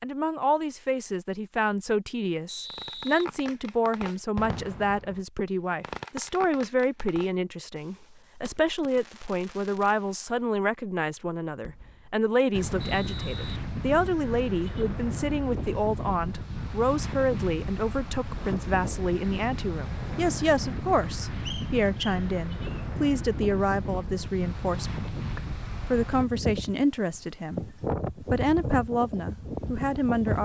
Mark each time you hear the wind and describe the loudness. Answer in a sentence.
You can hear the wind from 12.5 to 30.4 s, at a steady volume.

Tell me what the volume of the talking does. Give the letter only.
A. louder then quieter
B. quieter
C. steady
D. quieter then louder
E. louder
C.